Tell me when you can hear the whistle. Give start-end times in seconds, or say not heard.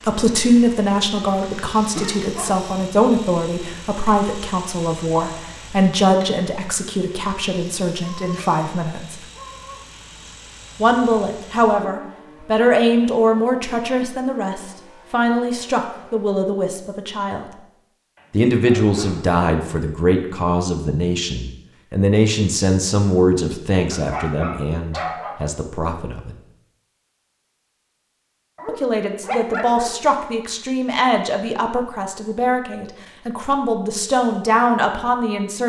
not heard.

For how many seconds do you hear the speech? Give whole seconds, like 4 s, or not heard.
31 s.